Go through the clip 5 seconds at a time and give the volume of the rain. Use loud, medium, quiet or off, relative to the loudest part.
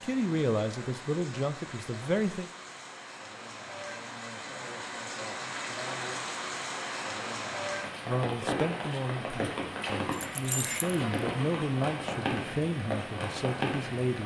medium, loud, loud.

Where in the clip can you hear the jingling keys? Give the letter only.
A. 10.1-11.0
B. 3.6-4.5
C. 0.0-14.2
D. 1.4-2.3
A.